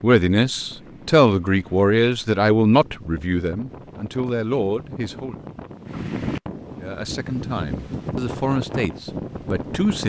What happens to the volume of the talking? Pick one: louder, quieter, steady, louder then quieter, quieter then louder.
quieter then louder.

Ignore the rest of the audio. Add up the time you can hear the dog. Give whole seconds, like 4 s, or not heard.
not heard.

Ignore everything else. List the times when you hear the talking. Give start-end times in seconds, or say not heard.
0.0-5.4, 6.8-10.0.